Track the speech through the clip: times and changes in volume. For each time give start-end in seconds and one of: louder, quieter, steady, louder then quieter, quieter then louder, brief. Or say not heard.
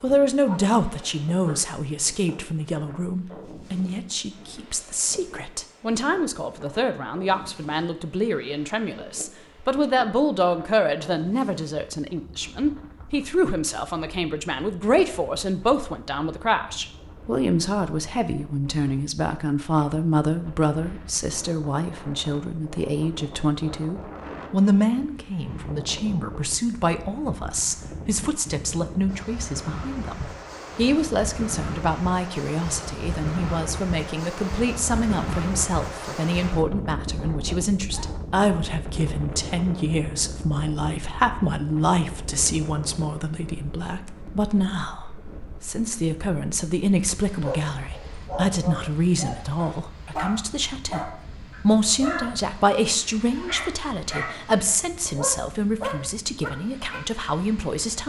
0.0-58.0 steady.